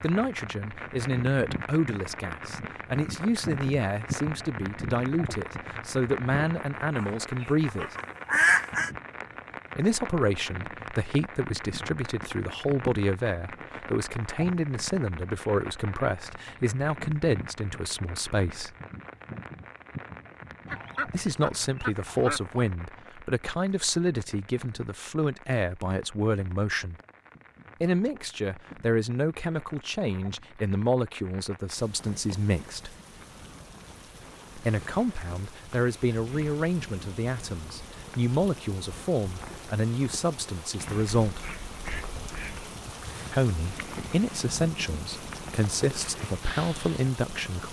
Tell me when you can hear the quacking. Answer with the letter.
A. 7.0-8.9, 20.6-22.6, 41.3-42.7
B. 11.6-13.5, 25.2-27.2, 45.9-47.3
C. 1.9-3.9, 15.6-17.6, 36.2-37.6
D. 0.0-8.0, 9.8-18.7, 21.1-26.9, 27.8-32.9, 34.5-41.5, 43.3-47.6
A.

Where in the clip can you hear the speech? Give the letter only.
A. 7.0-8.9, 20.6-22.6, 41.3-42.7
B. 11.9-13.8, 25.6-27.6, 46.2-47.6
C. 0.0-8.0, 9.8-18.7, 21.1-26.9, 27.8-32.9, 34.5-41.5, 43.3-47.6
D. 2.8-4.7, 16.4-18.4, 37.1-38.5
C.